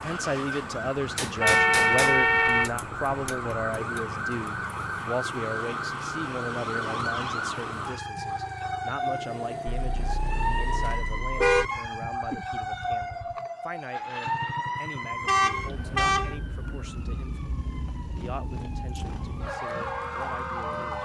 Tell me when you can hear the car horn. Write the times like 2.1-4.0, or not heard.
1.4-2.7, 9.7-11.7, 15.2-16.4.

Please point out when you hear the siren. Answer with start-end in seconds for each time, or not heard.
0.0-21.0.